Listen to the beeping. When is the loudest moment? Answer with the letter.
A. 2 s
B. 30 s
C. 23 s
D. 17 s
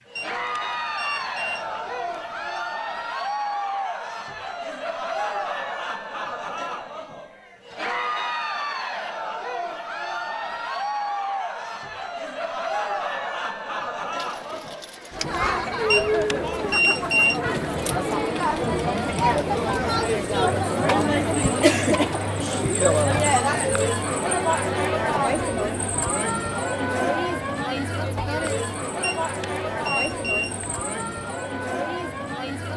D.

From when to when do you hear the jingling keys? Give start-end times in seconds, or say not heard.
14.2-15.6.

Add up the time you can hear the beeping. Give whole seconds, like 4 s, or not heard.
6 s.